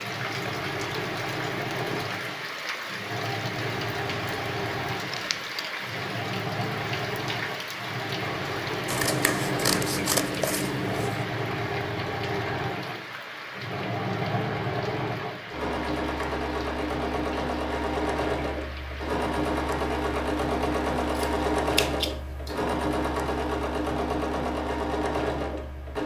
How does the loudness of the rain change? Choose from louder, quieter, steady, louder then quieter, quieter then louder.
quieter.